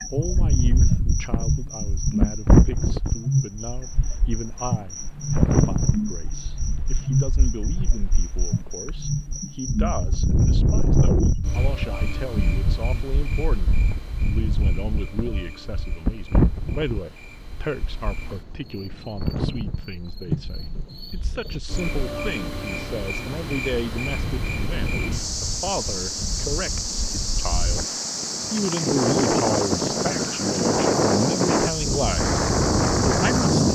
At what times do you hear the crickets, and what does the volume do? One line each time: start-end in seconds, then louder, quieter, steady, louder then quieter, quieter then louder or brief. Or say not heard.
0.0-33.7 quieter then louder.